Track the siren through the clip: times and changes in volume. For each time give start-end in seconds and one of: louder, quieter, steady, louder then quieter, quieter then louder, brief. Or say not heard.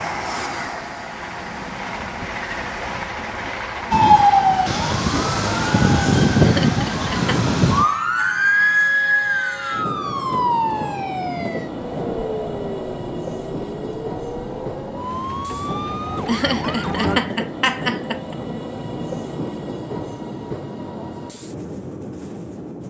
3.9-17.2 quieter.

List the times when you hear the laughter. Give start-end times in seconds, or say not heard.
6.4-7.5, 16.2-18.4.